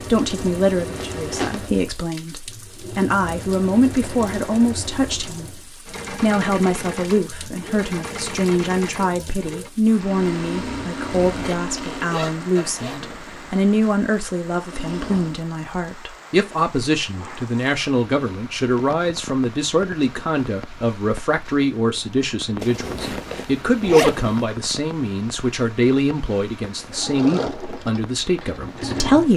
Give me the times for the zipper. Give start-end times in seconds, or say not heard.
1.1-1.6, 11.2-13.1, 22.6-24.4.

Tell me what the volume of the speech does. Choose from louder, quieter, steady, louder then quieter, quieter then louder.
steady.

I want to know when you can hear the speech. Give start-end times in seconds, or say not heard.
0.1-5.6, 6.2-29.3.